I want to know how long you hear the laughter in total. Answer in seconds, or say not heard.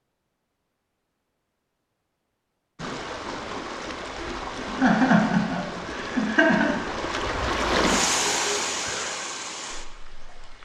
2 s.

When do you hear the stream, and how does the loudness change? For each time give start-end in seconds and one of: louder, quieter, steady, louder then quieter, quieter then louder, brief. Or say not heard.
2.8-10.5 louder then quieter.